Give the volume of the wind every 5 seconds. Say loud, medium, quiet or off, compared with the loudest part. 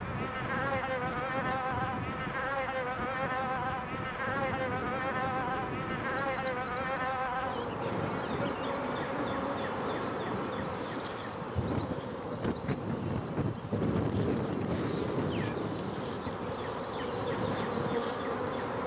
medium, medium, loud, loud.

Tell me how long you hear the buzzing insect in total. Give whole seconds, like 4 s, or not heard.
19 s.